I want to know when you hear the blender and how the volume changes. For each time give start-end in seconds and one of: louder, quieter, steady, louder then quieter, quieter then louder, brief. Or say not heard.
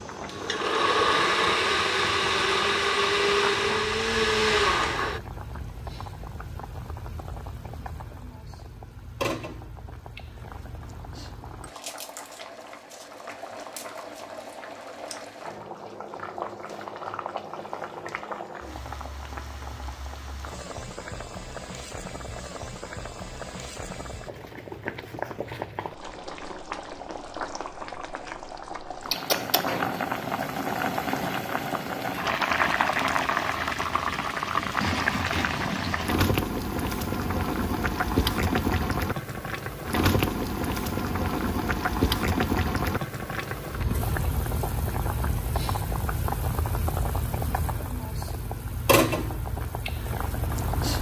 0.0-5.2 steady.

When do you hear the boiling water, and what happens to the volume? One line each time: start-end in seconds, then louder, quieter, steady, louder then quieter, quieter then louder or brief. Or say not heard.
0.0-50.9 louder.